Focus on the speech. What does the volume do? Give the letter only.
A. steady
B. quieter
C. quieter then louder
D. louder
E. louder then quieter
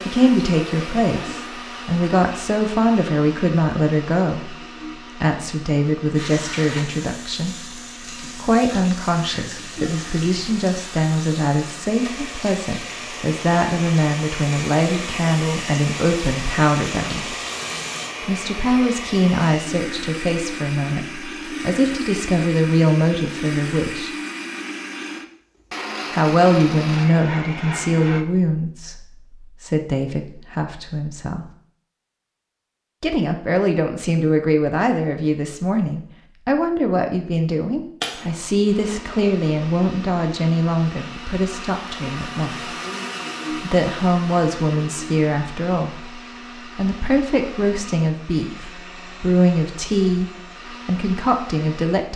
A.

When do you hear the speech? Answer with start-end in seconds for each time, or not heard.
0.1-4.5, 5.2-17.4, 18.2-24.1, 26.1-31.4, 33.0-42.8, 43.5-52.1.